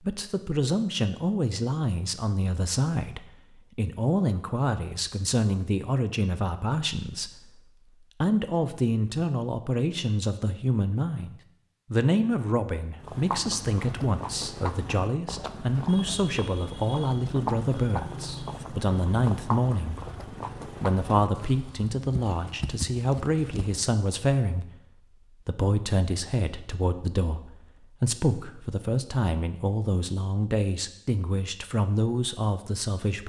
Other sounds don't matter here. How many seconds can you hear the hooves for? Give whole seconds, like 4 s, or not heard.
11 s.